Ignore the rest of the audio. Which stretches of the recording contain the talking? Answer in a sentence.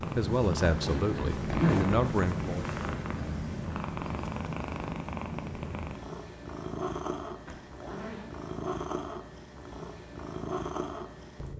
You can hear the talking from 0.1 to 2.6 s.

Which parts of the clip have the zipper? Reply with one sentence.
The zipper can be heard from 0.7 to 2.0 s and from 7.5 to 8.2 s.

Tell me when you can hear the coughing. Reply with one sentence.
You can't hear the coughing here.